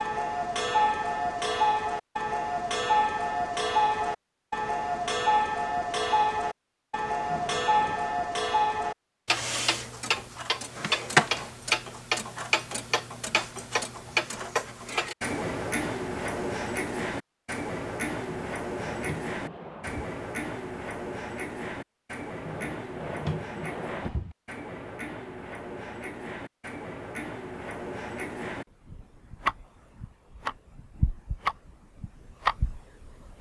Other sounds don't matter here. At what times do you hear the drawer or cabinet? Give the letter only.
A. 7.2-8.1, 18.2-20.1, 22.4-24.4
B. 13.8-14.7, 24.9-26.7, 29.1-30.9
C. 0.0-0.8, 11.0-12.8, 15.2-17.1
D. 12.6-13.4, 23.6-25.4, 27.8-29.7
A.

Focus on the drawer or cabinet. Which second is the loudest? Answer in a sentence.
The loudest moment of the drawer or cabinet is at 23 seconds.